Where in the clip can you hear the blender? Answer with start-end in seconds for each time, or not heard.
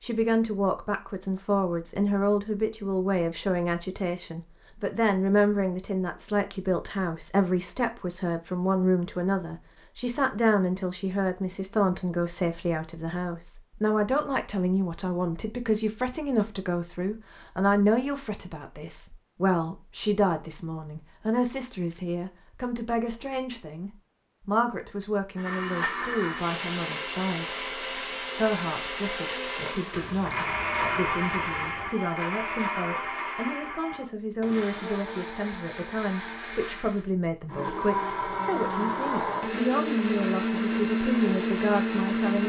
25.4-42.4.